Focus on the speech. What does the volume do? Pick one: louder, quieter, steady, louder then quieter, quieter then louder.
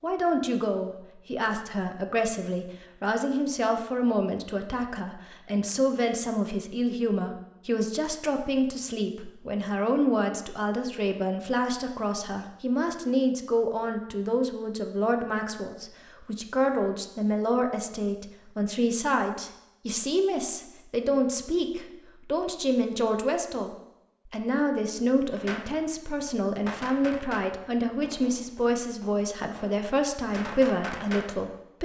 steady.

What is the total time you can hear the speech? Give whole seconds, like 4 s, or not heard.
32 s.